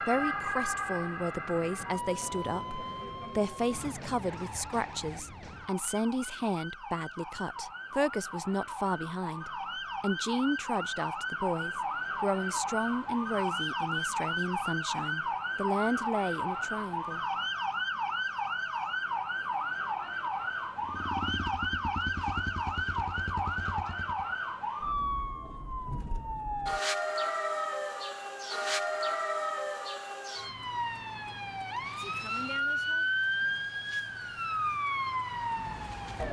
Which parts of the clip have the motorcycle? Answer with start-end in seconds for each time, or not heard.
20.8-24.4.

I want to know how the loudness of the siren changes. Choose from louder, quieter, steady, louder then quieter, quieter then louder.
louder.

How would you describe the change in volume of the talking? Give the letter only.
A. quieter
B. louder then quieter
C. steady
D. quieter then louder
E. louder
C.